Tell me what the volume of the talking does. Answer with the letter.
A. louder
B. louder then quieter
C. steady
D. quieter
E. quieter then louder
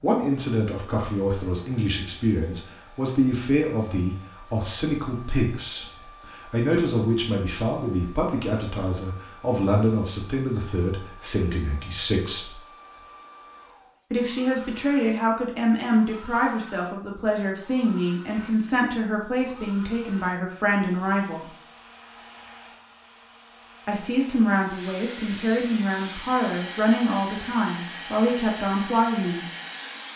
C.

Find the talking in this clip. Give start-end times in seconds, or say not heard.
0.0-12.6, 14.1-21.4, 23.9-29.4.